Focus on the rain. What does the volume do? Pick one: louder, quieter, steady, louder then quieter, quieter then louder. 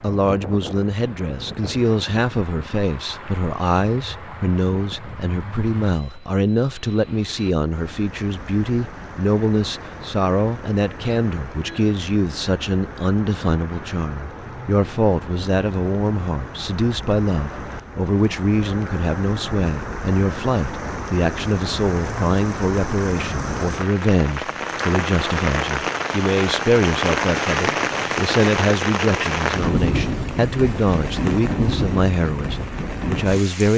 louder.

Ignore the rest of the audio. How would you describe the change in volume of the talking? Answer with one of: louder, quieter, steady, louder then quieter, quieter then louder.
steady.